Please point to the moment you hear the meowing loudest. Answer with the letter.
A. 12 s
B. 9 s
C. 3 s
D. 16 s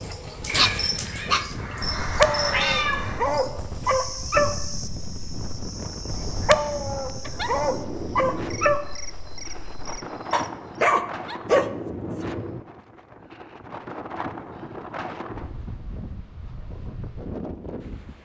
C.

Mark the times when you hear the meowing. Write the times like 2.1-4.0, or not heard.
0.7-3.2.